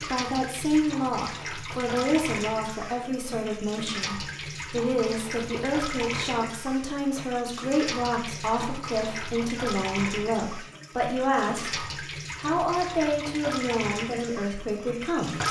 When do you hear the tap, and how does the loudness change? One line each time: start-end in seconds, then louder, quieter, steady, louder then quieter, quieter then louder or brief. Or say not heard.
0.0-15.4 steady.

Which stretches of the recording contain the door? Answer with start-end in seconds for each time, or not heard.
not heard.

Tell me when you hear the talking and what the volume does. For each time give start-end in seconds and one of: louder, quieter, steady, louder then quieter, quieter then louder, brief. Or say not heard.
0.0-15.4 steady.